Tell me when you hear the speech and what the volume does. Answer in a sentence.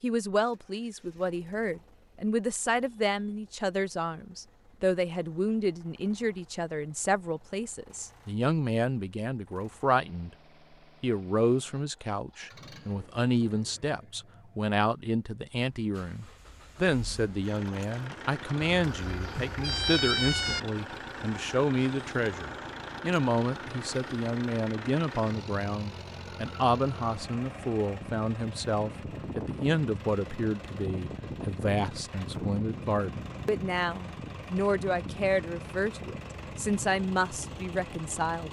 You can hear the speech from 0.0 to 10.3 s, at a steady volume; and from 11.0 to 38.4 s, at a steady volume.